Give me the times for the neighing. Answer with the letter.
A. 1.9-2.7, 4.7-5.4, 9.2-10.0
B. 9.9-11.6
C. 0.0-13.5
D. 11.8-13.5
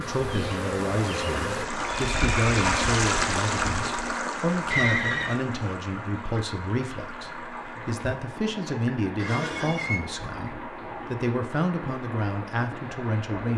A.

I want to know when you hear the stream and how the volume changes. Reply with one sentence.
The stream can be heard from 0.0 to 13.5 s, getting quieter.